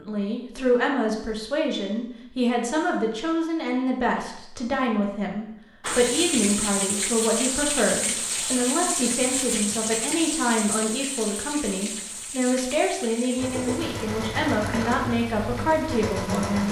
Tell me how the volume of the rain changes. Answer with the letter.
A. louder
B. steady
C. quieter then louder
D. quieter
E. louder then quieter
D.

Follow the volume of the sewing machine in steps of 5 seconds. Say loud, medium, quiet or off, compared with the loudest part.
off, off, loud, loud.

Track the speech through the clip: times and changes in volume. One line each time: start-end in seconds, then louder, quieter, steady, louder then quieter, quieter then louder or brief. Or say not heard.
0.0-16.6 steady.